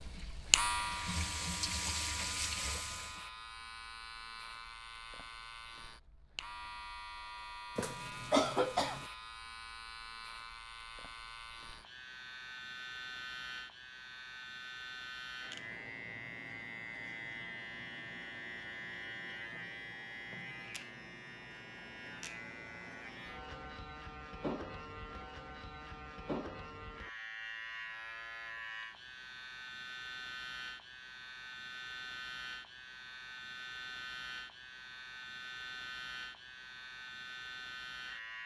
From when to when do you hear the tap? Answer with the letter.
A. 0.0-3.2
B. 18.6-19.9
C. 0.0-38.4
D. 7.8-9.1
A.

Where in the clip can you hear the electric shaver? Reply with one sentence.
The electric shaver can be heard from 0.0 to 38.4 s.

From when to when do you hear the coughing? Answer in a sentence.
You can hear the coughing from 7.8 to 9.1 s.